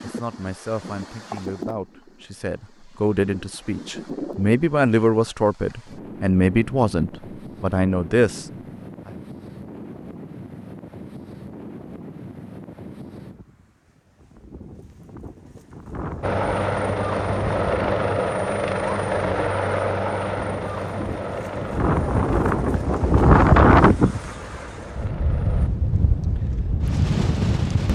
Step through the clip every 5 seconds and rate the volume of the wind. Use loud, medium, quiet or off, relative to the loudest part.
quiet, quiet, quiet, quiet, loud, medium.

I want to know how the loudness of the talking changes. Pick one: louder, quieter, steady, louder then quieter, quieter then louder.
louder.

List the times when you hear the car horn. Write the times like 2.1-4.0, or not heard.
not heard.